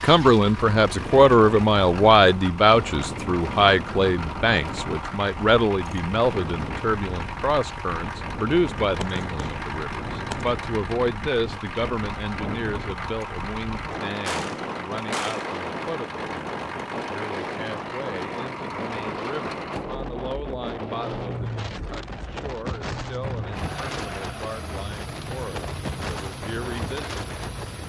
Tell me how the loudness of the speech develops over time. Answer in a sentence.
The volume of the speech goes down.